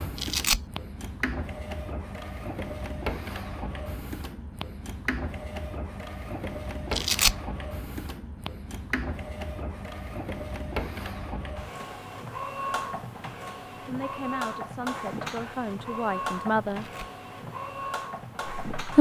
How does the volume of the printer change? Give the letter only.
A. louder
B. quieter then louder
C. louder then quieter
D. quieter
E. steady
E.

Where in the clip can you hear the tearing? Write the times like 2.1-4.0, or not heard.
0.1-0.6, 6.9-7.3, 16.6-17.1.